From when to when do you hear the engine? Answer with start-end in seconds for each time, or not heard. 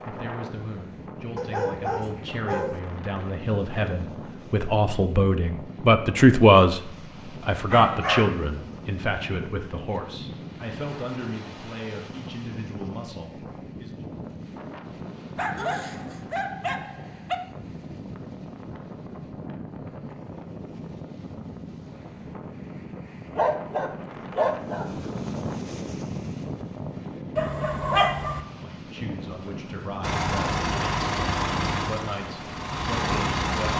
30.0-33.7.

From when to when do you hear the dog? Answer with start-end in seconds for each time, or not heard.
1.4-2.8, 7.0-8.4, 15.3-17.4, 23.3-24.9, 27.4-28.4.